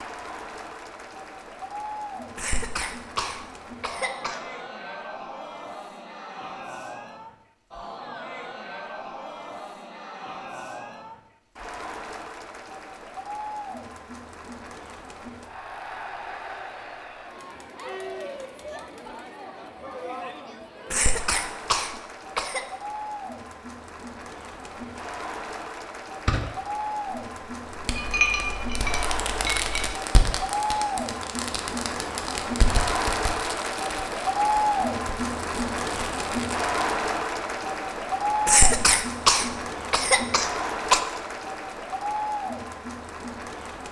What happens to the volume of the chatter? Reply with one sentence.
The volume of the chatter goes up.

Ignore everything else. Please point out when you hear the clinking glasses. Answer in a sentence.
You can hear the clinking glasses from 27.9 to 29.9 s.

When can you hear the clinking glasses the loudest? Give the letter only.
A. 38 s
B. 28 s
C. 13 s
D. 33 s
B.